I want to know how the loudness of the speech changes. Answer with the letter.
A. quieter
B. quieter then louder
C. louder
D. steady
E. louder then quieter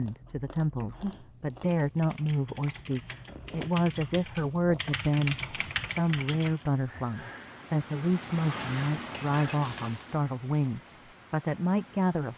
D.